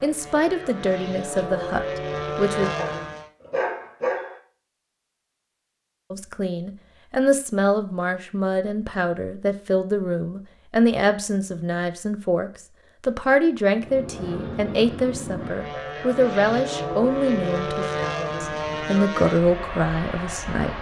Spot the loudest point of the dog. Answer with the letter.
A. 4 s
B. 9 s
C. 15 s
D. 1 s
A.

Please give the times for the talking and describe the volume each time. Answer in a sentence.
You can hear the talking briefly from 0.0 to 2.7 s; and from 6.1 to 20.7 s, at a steady volume.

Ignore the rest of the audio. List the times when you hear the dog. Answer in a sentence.
The dog can be heard from 2.8 to 4.4 s.